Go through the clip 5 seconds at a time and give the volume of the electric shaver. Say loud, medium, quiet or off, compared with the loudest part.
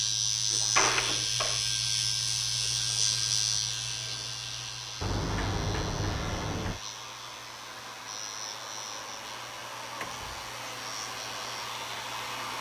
loud, quiet, quiet.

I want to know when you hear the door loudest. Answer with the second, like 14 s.
1 s.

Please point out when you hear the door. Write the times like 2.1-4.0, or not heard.
0.5-1.6, 5.0-6.8, 10.0-10.4.